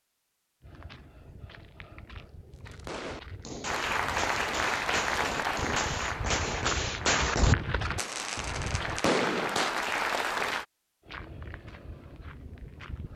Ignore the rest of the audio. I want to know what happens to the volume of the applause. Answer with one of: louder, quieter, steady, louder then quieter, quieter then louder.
quieter then louder.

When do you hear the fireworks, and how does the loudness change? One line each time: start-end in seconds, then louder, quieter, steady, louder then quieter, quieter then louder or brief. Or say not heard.
2.7-9.9 louder.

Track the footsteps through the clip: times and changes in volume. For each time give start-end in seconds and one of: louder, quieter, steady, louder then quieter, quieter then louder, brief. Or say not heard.
0.6-9.1 louder
11.0-13.1 brief.